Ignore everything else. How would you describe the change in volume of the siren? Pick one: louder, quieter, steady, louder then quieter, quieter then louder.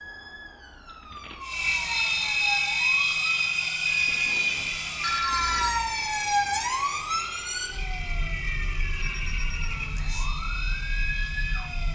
louder then quieter.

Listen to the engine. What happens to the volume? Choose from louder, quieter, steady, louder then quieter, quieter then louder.
quieter.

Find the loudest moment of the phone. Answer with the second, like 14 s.
5 s.